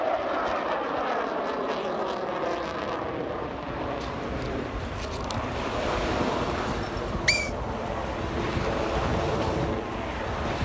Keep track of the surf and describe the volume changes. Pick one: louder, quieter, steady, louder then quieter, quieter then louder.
louder.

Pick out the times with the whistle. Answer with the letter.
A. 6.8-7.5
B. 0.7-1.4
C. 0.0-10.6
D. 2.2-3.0
A.